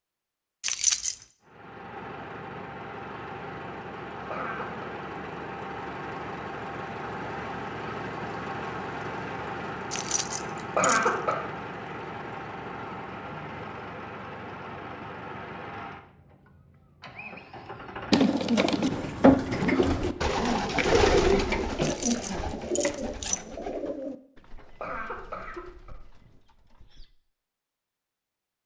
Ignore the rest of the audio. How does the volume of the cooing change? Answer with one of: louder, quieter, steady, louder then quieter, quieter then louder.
quieter.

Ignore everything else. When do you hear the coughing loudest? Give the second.
11 s.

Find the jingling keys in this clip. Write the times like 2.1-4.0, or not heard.
0.6-1.2, 9.9-11.2, 21.8-23.4.